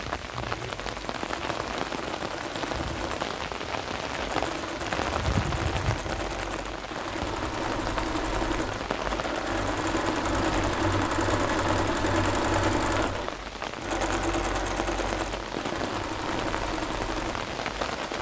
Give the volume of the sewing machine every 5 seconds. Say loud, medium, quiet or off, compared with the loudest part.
medium, medium, loud, medium.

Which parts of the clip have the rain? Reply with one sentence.
The rain can be heard from 0.0 to 18.1 s.